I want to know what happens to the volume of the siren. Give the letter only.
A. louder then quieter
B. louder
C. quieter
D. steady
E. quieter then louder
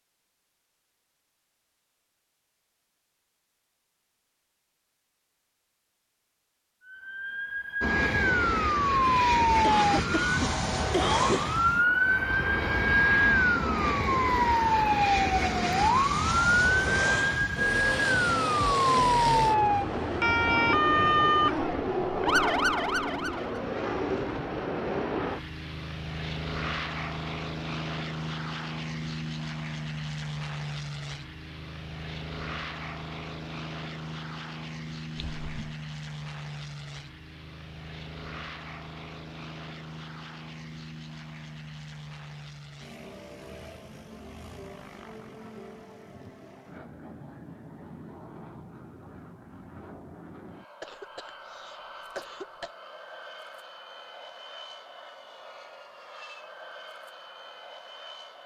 D.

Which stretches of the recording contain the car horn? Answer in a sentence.
You can't hear the car horn here.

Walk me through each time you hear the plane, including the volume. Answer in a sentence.
You can hear the plane from 7.8 to 58.4 s, getting quieter.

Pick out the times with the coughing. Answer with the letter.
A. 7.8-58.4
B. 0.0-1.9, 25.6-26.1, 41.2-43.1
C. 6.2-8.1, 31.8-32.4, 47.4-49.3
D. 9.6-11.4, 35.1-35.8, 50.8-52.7
D.